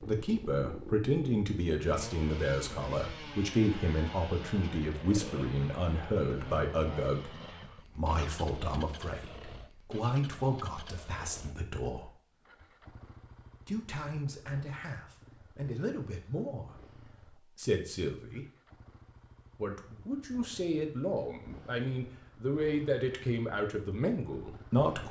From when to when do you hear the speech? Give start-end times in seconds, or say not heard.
0.0-12.1, 13.7-18.4, 19.6-25.0.